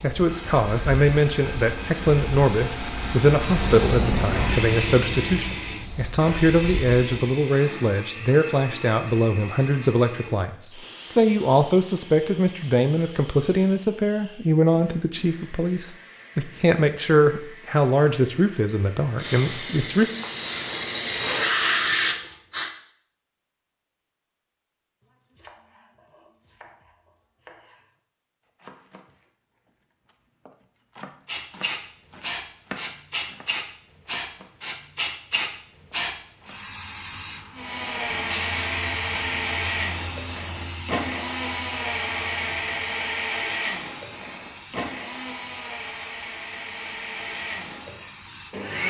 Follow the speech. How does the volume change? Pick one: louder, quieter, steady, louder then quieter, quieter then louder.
steady.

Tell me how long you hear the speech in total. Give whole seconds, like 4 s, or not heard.
20 s.